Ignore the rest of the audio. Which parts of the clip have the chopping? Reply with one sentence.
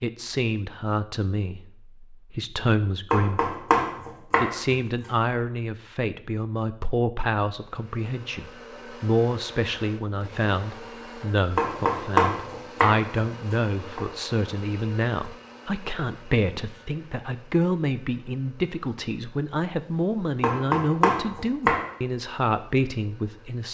The chopping can be heard from 3.1 to 5.1 s, from 11.6 to 14.0 s and from 20.4 to 21.9 s.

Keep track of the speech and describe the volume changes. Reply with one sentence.
The volume of the speech stays about the same.